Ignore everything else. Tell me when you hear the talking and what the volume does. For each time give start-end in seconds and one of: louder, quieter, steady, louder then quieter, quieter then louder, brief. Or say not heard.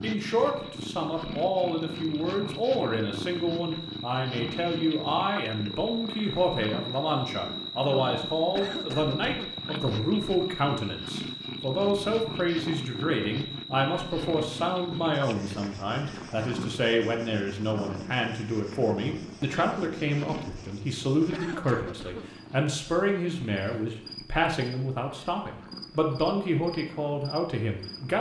0.0-28.1 steady.